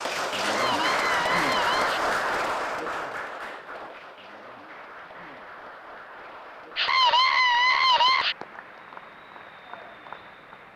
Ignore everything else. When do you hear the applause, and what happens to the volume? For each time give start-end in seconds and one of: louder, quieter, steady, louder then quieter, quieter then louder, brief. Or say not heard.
0.0-10.7 quieter.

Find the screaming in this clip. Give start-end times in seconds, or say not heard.
0.4-2.0, 6.8-8.3.